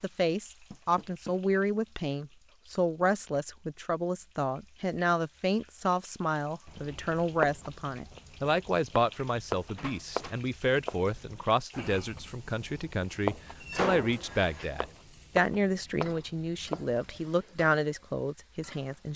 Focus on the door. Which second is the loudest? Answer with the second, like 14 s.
14 s.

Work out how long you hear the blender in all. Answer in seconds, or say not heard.
not heard.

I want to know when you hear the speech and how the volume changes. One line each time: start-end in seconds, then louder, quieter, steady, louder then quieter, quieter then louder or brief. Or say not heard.
0.0-19.1 steady.